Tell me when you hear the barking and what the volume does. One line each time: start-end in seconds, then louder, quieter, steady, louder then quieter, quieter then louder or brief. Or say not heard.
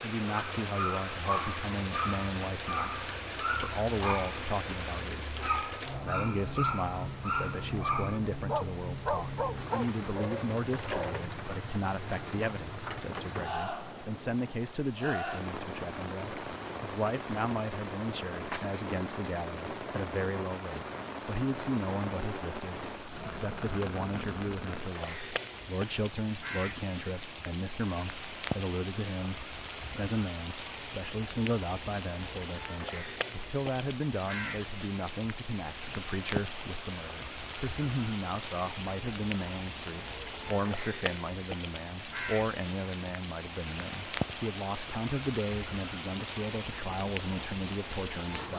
0.2-11.2 steady.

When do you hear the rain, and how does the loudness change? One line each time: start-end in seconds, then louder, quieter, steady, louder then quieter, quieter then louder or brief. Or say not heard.
0.0-48.5 steady.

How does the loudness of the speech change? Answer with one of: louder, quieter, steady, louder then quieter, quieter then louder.
steady.